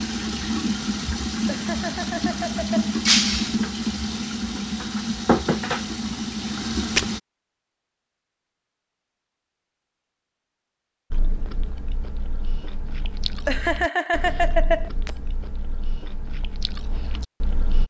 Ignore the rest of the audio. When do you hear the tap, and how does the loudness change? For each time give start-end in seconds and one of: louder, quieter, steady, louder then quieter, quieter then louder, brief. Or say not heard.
0.0-7.2 steady.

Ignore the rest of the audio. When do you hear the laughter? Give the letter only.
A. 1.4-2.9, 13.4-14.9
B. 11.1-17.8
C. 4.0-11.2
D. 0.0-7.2
A.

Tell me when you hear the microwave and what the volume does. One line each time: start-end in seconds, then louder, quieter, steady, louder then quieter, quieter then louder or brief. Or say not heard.
not heard.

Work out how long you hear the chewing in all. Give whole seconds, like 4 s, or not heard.
7 s.